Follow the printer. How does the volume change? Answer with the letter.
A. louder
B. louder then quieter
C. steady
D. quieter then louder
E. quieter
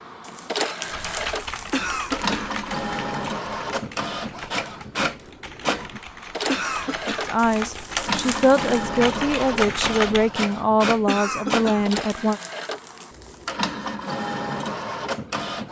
C.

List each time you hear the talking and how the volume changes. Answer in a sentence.
You can hear the talking from 7.2 to 12.4 s, at a steady volume.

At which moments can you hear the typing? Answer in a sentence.
The typing can be heard from 0.9 to 10.3 s.